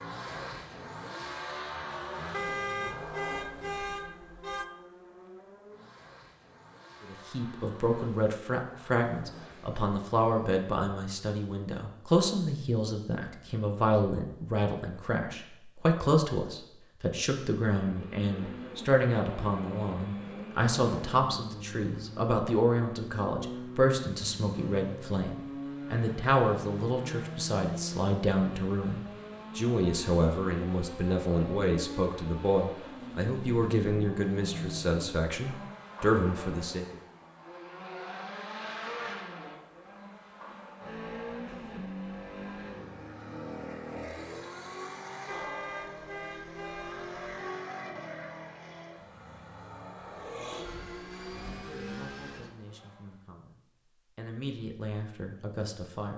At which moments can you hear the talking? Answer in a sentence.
You can hear the talking from 7.0 to 37.0 s and from 51.5 to 56.1 s.